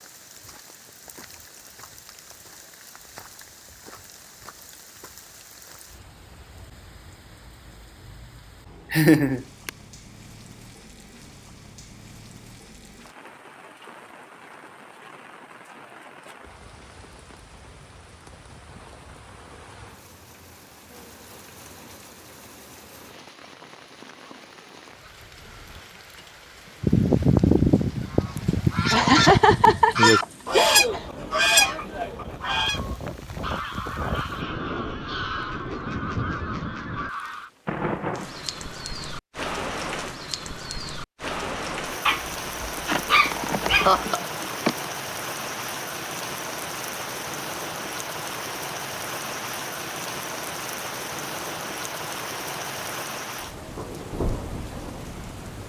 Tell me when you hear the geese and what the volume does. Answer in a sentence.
The geese can be heard from 26.8 to 37.5 s, getting quieter.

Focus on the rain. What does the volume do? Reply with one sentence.
The volume of the rain goes up.